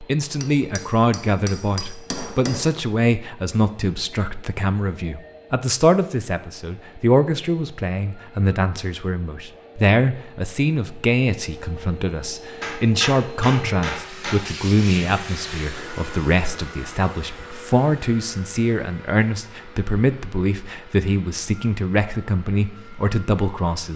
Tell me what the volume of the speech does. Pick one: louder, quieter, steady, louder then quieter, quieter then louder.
steady.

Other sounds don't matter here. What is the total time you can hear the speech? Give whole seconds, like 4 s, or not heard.
24 s.